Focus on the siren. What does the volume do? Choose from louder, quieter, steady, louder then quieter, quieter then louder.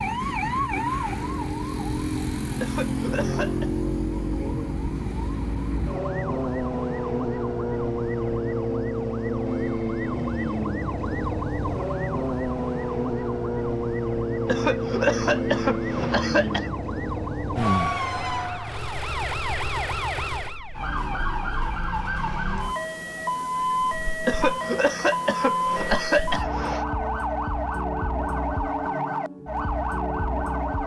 steady.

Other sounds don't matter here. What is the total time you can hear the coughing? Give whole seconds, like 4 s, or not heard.
6 s.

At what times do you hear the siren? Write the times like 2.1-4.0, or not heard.
0.0-30.8.